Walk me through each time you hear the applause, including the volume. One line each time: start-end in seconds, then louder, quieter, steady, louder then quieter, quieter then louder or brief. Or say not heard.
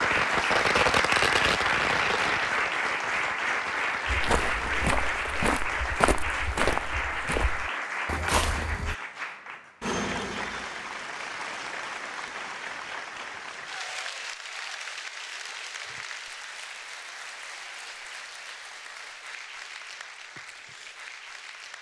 0.0-21.7 quieter.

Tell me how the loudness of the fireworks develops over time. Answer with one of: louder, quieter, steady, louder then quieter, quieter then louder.
quieter.